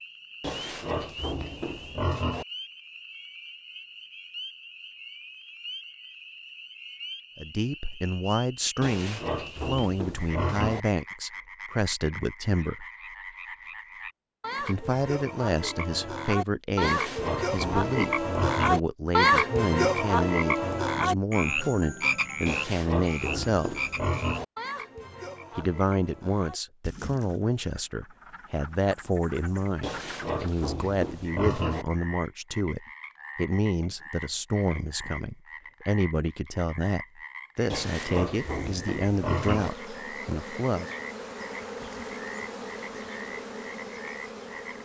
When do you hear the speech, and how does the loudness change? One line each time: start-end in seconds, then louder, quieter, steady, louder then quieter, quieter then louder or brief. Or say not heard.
7.3-12.8 steady
14.6-23.8 steady
25.6-40.9 steady.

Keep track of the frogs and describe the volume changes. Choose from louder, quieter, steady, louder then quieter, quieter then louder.
louder then quieter.